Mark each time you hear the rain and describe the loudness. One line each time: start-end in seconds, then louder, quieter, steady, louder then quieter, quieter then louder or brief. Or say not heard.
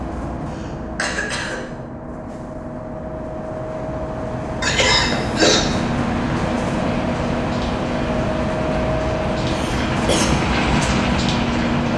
4.9-11.9 louder.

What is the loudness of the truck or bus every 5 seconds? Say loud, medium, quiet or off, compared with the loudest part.
medium, loud, loud.